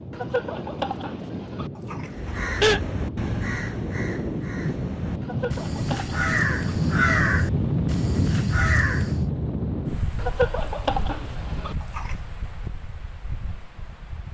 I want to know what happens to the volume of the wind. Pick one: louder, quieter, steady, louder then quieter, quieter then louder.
louder then quieter.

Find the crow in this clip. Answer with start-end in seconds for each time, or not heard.
2.0-9.2.